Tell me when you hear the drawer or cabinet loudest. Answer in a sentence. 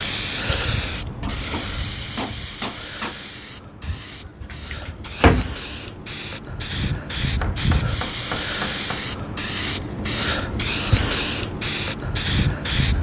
The volume of the drawer or cabinet peaks at 5 seconds.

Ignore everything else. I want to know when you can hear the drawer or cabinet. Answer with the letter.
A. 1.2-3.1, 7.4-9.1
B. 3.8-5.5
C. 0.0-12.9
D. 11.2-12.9
B.